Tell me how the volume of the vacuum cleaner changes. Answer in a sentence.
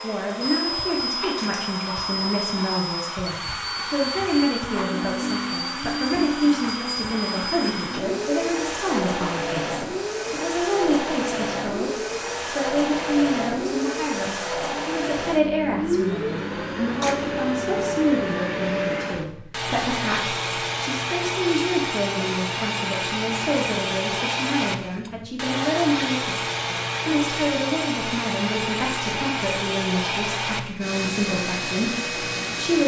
The volume of the vacuum cleaner stays about the same.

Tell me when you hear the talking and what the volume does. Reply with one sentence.
You can hear the talking from 0.0 to 32.8 s, at a steady volume.